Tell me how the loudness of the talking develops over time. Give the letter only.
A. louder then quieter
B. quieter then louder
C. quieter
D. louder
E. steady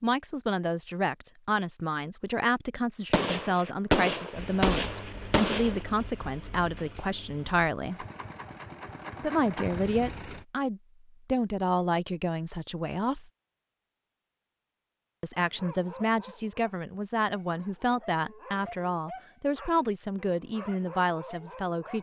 E.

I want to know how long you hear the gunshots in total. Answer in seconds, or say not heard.
3 s.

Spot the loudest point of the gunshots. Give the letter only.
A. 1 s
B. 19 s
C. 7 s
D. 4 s
D.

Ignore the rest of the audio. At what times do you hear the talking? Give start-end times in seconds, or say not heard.
0.0-8.1, 9.2-13.2, 15.2-21.9.